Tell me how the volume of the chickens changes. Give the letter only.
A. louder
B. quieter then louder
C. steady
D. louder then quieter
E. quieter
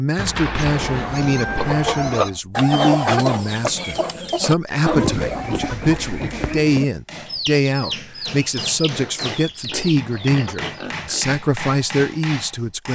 E.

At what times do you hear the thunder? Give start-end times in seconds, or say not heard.
0.1-2.2.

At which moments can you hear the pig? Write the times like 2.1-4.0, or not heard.
0.3-2.3, 5.1-6.6, 8.9-11.2.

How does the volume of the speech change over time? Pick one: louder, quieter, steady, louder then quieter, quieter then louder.
steady.